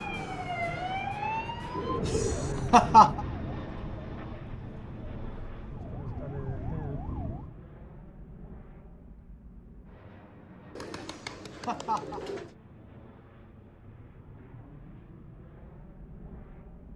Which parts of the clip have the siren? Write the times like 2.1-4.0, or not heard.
0.0-7.5.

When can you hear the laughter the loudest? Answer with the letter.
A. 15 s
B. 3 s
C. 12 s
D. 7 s
B.